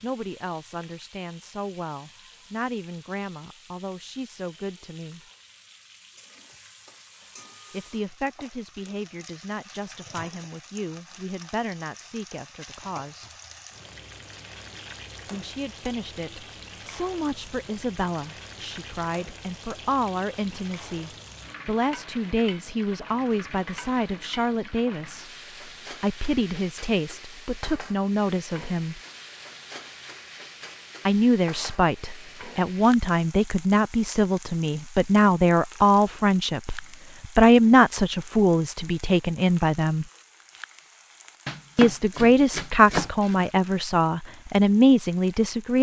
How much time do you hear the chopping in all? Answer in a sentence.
You can hear the chopping for 2 seconds altogether.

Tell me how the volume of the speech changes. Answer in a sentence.
The volume of the speech goes up.